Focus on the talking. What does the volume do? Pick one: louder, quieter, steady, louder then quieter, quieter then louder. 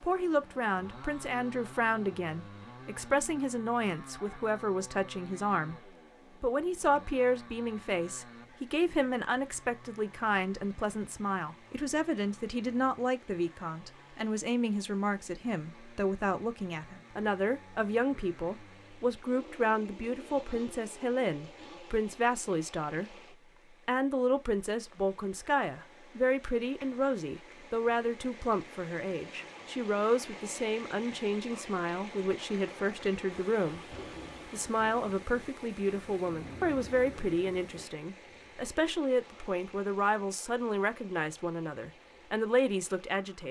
steady.